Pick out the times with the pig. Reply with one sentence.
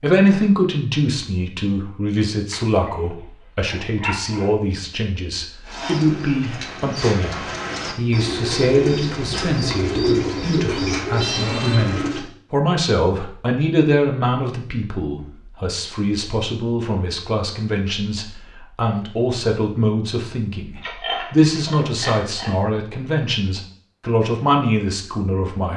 You can hear the pig from 2.5 to 4.5 s and from 20.8 to 22.6 s.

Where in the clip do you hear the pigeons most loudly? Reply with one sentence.
The loudest moment of the pigeons is at 10 seconds.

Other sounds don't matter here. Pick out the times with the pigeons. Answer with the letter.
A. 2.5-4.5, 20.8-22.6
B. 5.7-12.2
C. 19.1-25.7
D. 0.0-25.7
B.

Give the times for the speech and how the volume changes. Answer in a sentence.
You can hear the speech from 0.0 to 25.7 s, at a steady volume.